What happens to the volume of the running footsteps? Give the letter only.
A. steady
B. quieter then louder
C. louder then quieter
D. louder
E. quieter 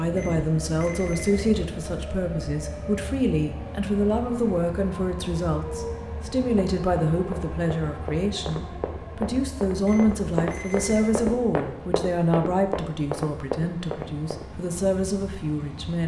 D.